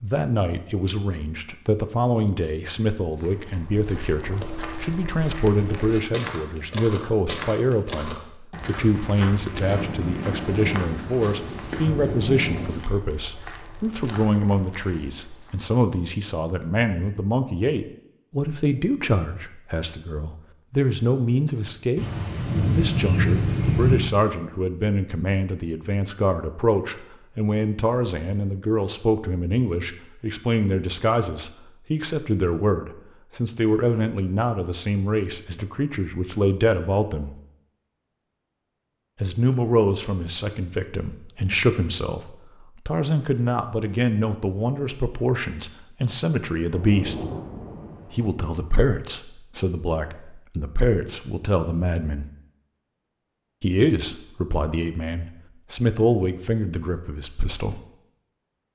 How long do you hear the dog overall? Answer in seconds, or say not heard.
not heard.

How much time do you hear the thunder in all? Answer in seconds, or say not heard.
7 s.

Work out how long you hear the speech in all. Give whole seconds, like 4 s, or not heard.
53 s.